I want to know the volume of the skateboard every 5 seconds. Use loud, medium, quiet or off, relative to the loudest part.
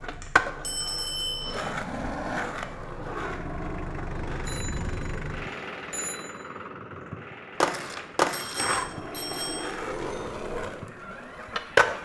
medium, loud, loud.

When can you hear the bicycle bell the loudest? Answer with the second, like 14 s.
1 s.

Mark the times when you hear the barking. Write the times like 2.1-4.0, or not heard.
not heard.